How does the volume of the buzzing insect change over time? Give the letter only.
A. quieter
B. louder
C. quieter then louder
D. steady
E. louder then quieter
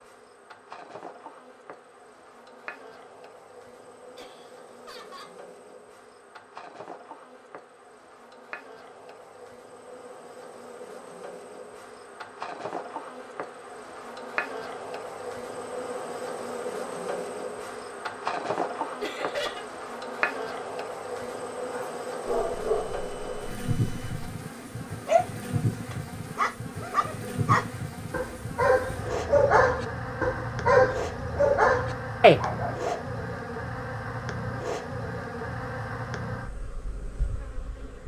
B.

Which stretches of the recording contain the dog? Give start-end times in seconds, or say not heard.
21.7-33.0.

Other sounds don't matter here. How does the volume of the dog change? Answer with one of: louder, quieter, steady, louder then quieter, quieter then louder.
louder.